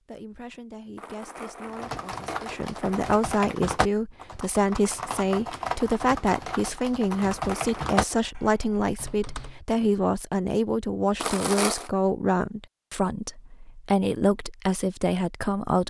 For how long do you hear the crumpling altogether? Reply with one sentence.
You can hear the crumpling for 4 seconds altogether.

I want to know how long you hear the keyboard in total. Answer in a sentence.
The keyboard can be heard for 8 seconds in total.